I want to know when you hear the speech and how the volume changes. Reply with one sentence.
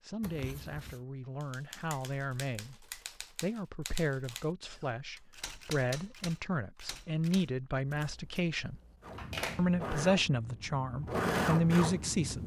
You can hear the speech from 0.0 to 8.8 s, getting louder; and briefly from 9.6 to 12.4 s.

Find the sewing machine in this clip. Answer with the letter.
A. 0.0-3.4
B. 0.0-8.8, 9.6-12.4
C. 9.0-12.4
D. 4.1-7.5
C.